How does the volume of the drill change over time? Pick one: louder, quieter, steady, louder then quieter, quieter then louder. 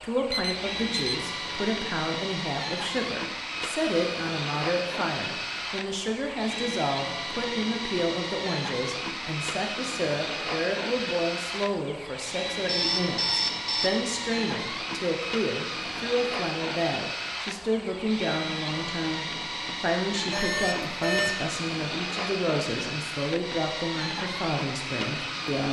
steady.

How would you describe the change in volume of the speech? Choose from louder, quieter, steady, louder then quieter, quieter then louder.
steady.